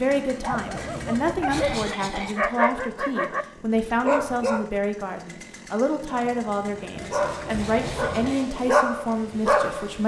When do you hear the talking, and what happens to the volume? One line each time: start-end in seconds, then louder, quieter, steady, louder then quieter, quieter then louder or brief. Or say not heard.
0.0-10.0 steady.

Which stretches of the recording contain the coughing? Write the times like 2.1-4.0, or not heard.
1.4-2.4, 7.6-8.5.